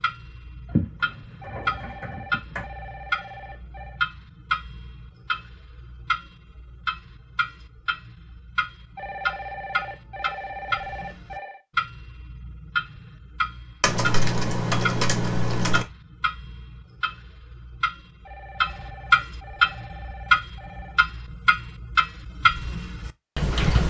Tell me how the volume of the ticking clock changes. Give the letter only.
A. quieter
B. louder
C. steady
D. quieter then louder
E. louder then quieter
B.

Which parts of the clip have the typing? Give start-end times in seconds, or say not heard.
0.7-2.6, 13.8-15.8.